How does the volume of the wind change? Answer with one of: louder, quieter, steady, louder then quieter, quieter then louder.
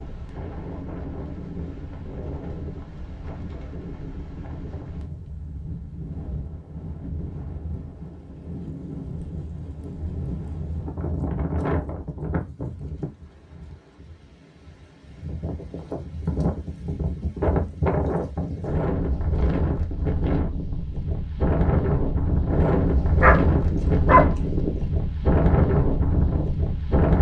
louder.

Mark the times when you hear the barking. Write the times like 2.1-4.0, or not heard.
23.0-24.8.